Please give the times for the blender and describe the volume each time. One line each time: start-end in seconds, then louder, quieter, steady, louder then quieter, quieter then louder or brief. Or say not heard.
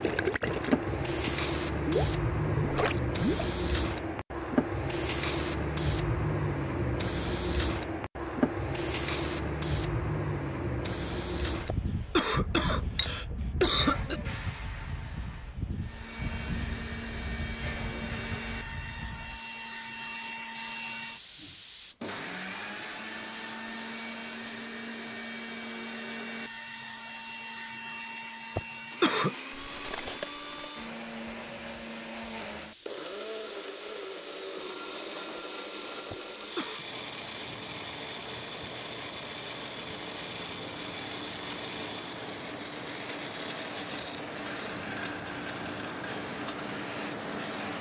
15.8-47.7 steady.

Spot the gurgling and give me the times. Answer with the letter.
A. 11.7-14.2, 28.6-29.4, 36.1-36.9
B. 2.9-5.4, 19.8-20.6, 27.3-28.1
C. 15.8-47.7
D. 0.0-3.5
D.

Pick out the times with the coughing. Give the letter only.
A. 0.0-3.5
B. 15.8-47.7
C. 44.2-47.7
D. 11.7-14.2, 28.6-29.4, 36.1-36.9
D.